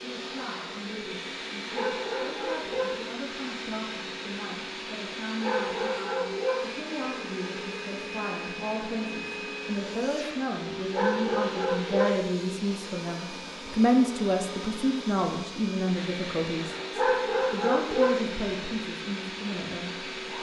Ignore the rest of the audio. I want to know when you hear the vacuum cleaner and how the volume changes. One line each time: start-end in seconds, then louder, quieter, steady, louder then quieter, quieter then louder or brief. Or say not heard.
0.0-20.3 steady.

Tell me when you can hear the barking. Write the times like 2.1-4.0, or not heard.
1.7-3.1, 5.4-6.8, 10.9-12.3, 16.9-18.4.